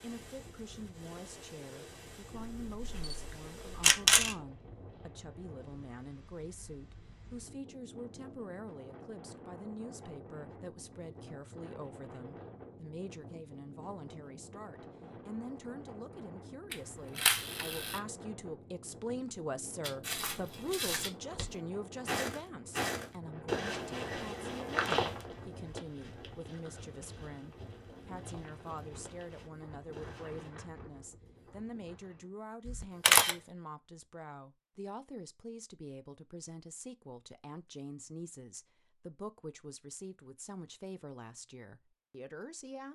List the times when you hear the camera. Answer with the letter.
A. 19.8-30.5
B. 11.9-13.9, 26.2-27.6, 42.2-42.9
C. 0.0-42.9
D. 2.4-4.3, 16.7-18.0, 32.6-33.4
D.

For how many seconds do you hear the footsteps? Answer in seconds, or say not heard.
11 s.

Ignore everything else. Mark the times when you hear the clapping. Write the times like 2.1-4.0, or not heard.
not heard.